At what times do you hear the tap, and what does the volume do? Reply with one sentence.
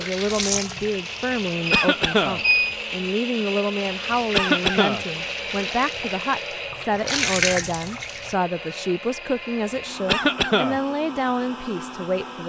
The tap can be heard briefly from 0.0 to 1.6 s; and from 4.0 to 8.3 s, getting louder.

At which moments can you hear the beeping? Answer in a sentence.
You can hear the beeping from 1.6 to 2.8 s.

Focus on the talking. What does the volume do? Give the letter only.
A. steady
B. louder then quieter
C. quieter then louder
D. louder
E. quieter
A.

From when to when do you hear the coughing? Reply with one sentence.
You can hear the coughing from 1.7 to 2.4 s, from 4.3 to 5.0 s and from 10.1 to 10.8 s.